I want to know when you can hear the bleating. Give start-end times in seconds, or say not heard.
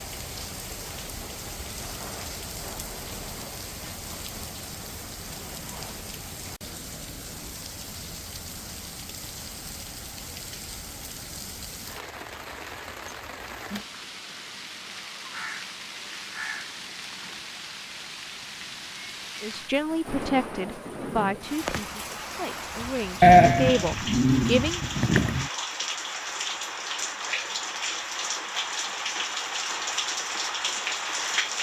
23.2-25.4.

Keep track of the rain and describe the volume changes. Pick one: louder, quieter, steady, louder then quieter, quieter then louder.
louder.